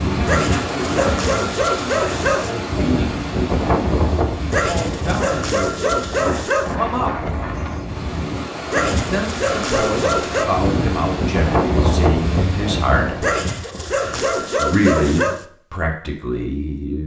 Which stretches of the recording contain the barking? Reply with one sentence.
You can hear the barking from 0.2 to 2.5 s, from 4.5 to 6.8 s, from 8.7 to 10.5 s and from 13.2 to 15.4 s.